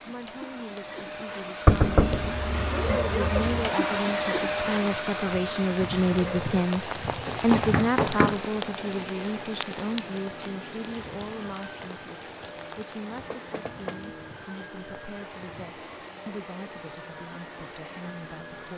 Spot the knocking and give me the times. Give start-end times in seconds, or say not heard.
1.6-3.7, 7.2-8.4, 13.3-14.1.